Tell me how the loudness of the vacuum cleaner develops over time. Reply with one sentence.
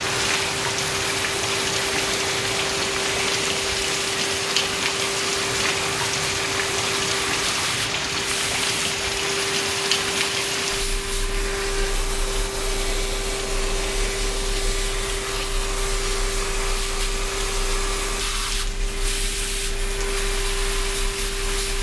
The loudness of the vacuum cleaner stays about the same.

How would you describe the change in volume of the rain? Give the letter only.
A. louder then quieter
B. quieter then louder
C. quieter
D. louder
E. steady
C.